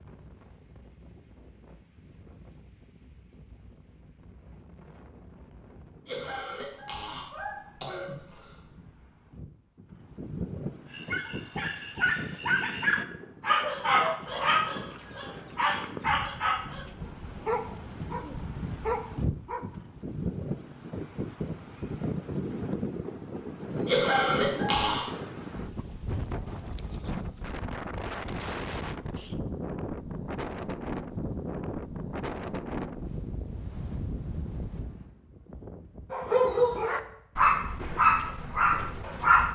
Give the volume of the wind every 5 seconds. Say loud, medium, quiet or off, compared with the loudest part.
quiet, quiet, medium, medium, loud, loud, loud, quiet.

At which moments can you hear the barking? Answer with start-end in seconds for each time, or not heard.
10.9-19.7, 36.1-39.4.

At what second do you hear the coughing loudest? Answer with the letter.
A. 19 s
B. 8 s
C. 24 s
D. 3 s
C.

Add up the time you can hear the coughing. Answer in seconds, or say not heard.
4 s.